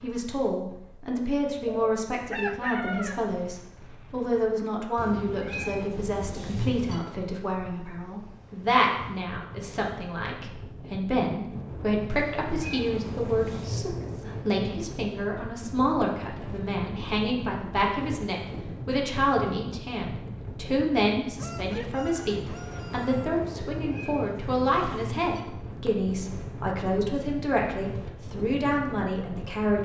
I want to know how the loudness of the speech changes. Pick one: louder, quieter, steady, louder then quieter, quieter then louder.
steady.